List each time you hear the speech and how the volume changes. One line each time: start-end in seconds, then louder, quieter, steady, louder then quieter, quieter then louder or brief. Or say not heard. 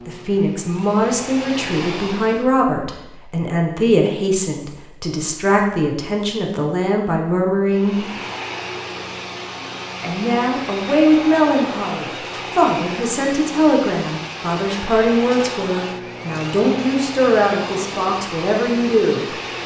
0.1-8.1 steady
10.0-19.3 steady.